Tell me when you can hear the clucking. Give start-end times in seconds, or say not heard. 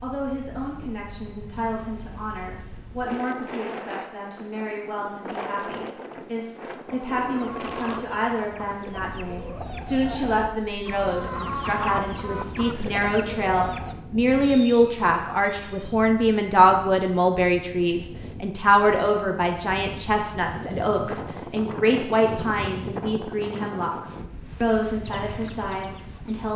6.8-13.9, 25.0-26.4.